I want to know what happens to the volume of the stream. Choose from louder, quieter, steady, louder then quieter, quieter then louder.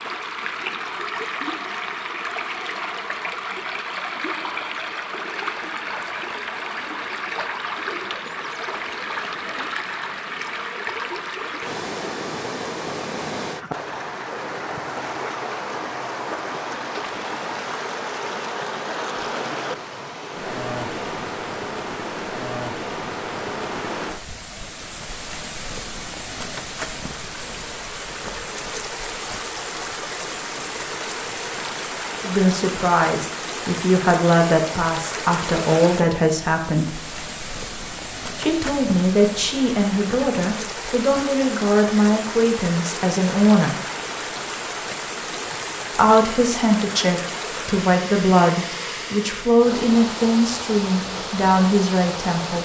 steady.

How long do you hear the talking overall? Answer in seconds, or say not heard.
17 s.